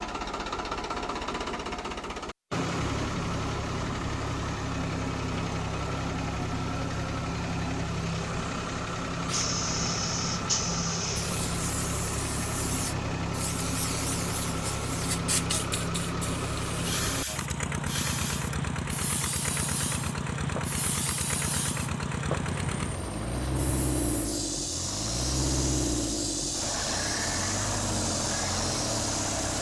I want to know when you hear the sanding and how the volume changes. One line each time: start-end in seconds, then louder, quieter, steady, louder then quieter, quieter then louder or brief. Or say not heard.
not heard.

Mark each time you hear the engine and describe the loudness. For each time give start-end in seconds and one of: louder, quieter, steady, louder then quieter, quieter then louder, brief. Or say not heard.
0.0-29.5 steady.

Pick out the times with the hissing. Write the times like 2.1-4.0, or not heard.
9.2-29.5.